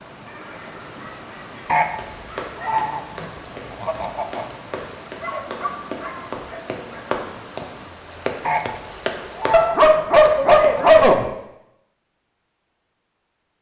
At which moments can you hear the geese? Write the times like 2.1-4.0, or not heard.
1.6-4.6, 8.4-10.8.